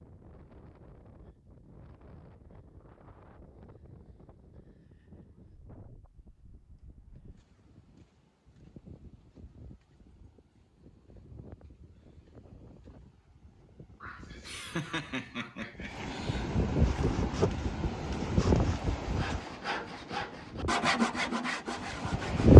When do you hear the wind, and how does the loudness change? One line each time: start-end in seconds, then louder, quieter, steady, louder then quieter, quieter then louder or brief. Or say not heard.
0.0-22.5 louder.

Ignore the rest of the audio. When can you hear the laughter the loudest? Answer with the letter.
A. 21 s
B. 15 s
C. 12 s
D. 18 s
B.